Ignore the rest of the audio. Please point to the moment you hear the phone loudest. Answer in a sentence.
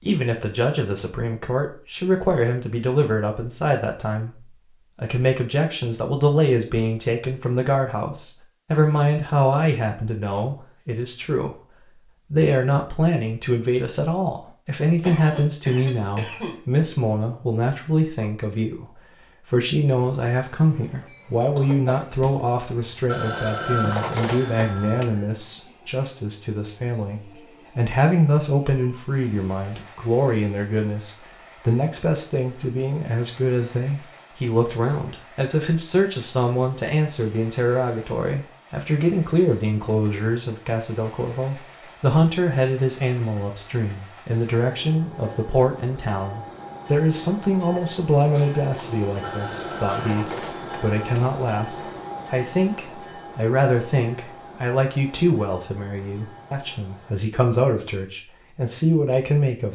The volume of the phone peaks at 24 seconds.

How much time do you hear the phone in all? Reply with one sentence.
You can hear the phone for 4 seconds altogether.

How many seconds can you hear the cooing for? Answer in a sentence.
You can't hear the cooing here.